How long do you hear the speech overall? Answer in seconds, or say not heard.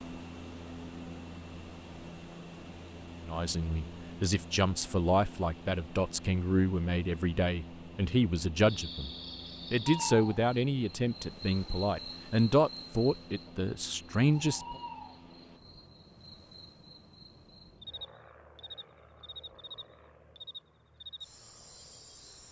11 s.